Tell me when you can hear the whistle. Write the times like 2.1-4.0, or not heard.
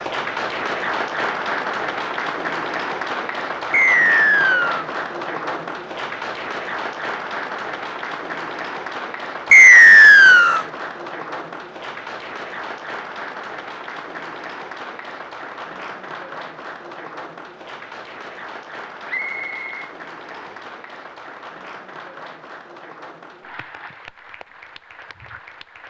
3.7-4.8, 9.5-10.7, 19.1-20.6.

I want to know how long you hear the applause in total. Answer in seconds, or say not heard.
26 s.